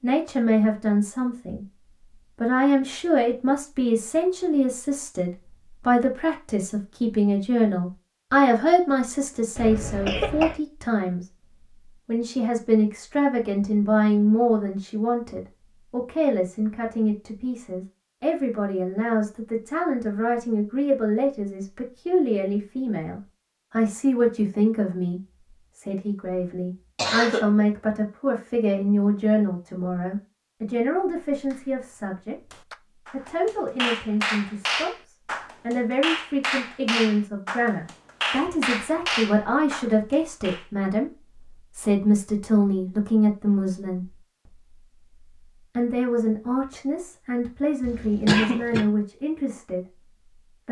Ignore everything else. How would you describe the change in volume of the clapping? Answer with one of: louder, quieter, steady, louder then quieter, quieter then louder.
louder.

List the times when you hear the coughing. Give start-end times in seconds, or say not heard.
9.6-10.6, 26.9-27.5, 47.8-48.9.